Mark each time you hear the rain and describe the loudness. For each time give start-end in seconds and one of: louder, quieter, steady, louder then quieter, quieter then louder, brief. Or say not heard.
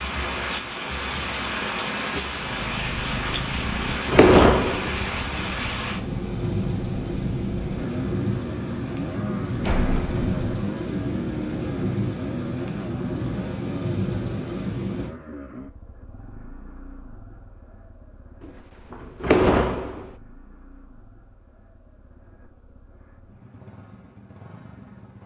0.0-15.2 steady.